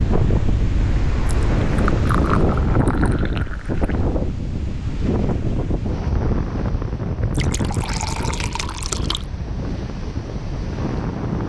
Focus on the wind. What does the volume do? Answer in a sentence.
The volume of the wind goes down.